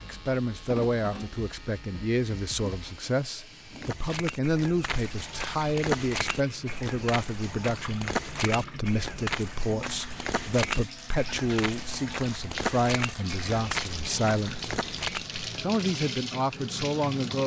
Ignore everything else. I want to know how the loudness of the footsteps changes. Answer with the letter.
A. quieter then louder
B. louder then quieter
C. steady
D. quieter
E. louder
C.